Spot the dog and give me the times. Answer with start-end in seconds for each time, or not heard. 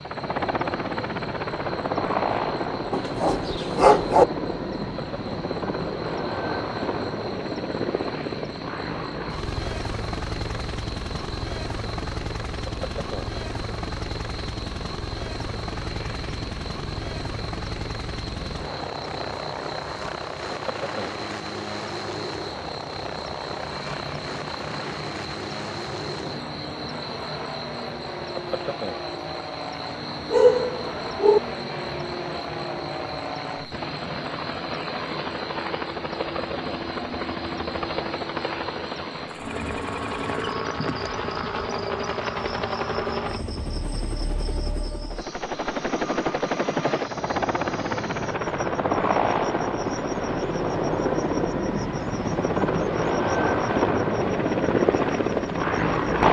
2.9-4.2, 30.3-31.4.